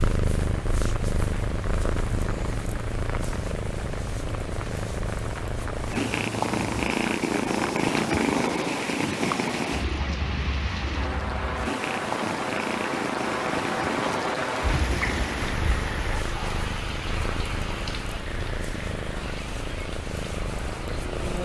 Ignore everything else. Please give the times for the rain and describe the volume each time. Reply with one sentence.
The rain can be heard from 0.0 to 21.4 s, getting louder then quieter.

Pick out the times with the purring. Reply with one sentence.
The purring can be heard from 0.0 to 21.4 s.